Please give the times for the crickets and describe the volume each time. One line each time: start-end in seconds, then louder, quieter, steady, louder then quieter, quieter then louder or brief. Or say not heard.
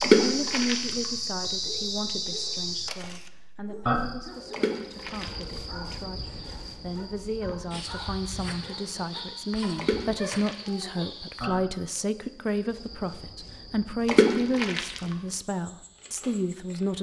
0.0-16.9 quieter.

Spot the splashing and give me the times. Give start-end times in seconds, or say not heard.
0.0-0.9, 4.5-5.5, 9.8-10.7, 14.1-15.0.